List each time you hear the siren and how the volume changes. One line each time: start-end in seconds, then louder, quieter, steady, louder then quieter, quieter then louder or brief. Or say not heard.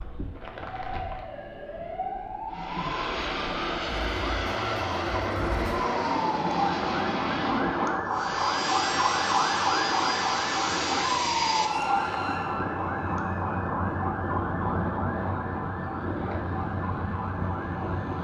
0.0-18.1 louder then quieter.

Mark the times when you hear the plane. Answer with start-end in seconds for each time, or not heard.
2.5-18.1.